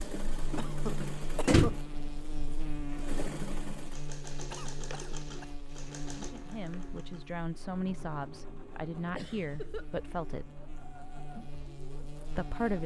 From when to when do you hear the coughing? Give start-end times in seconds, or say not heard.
0.6-1.8, 4.5-5.5, 9.1-10.1.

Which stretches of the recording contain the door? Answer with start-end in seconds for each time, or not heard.
0.5-1.8.